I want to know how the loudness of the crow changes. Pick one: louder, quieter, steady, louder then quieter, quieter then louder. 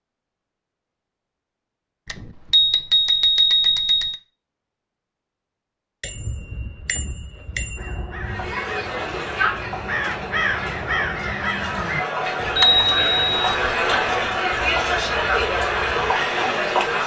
louder then quieter.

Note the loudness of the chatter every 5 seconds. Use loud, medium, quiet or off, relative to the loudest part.
off, medium, loud, loud.